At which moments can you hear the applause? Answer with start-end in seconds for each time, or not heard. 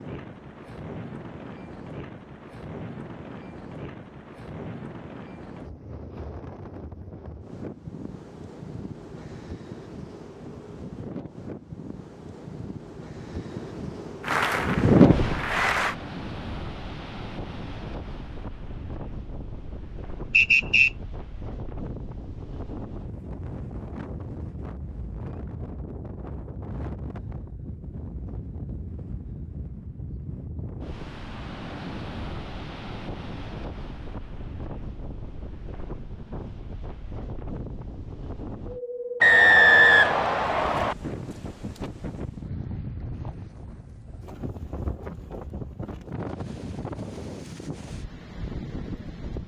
14.2-15.9.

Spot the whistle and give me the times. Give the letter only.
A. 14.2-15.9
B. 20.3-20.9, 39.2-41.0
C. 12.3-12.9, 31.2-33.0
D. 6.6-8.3
B.